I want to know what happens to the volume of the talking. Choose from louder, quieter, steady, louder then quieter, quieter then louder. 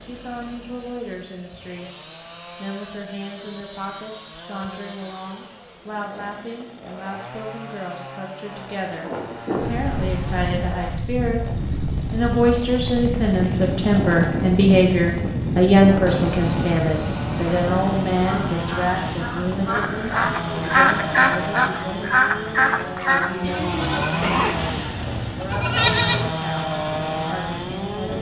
louder then quieter.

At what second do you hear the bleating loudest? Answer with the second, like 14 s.
26 s.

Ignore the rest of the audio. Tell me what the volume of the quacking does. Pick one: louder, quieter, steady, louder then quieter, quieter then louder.
louder.